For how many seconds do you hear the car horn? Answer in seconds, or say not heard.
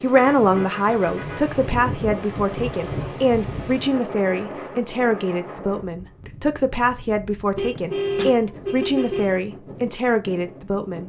3 s.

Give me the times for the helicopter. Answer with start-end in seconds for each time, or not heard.
not heard.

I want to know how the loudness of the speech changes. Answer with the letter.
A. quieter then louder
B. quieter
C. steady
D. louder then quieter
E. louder
C.